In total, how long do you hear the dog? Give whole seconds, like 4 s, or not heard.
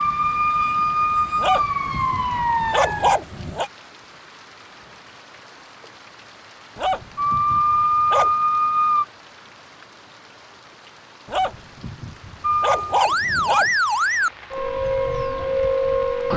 6 s.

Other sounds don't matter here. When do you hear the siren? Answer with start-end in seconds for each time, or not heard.
0.0-3.2, 7.2-9.1, 12.4-16.3.